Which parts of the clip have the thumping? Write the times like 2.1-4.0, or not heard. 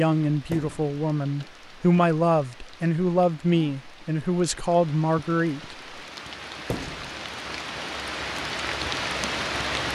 0.5-0.9, 6.7-7.2.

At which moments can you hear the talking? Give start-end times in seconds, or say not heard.
0.0-5.8.